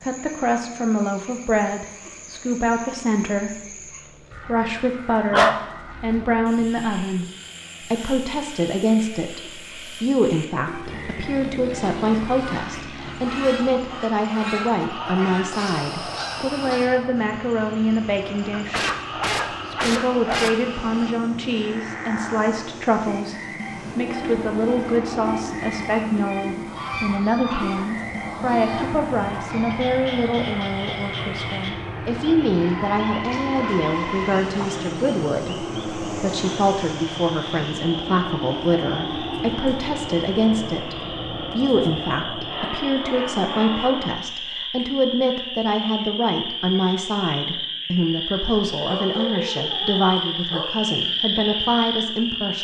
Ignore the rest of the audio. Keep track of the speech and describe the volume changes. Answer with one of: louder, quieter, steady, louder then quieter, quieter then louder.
steady.